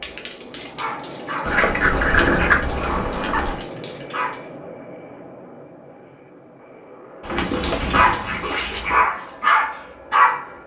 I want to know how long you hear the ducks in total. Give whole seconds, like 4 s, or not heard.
4 s.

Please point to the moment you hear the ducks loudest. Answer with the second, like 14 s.
2 s.